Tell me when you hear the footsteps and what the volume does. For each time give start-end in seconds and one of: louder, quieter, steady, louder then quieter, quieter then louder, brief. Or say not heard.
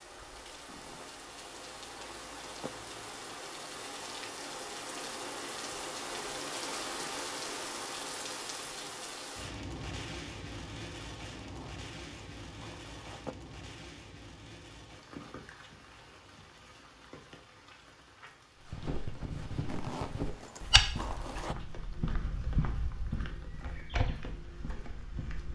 18.6-25.4 louder then quieter.